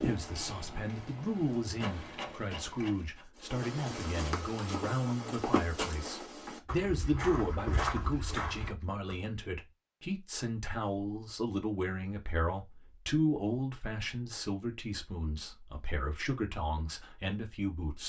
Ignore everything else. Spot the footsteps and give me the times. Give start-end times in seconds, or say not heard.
3.4-9.2.